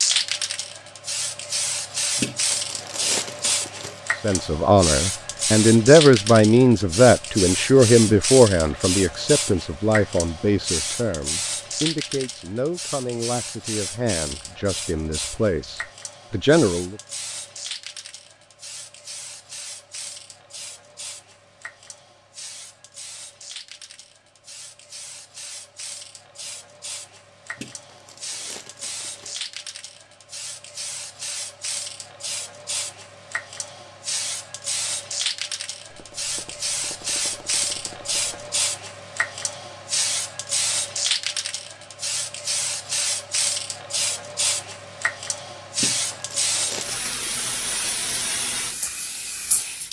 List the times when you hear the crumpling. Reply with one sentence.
The crumpling can be heard from 2.1 to 4.0 s, from 27.6 to 29.4 s and from 45.8 to 47.5 s.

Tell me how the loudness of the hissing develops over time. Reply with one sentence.
The loudness of the hissing goes down, then up.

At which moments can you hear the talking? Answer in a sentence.
The talking can be heard from 4.2 to 16.9 s.